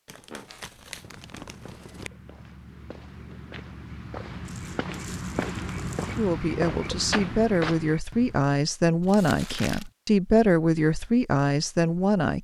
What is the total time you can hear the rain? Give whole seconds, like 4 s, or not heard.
not heard.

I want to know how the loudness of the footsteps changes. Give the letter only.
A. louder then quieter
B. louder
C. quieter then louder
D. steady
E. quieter
B.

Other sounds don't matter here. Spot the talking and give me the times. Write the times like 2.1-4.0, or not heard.
6.2-12.3.